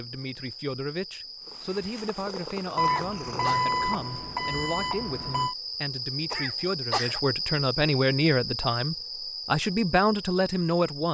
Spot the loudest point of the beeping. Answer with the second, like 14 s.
4 s.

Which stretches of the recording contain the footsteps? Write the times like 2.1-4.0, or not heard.
not heard.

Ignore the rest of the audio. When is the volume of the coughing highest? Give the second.
7 s.